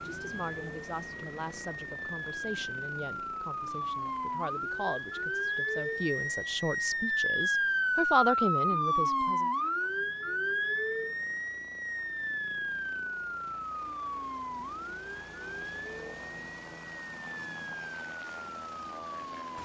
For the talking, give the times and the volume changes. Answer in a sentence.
The talking can be heard from 0.1 to 9.5 s, getting louder.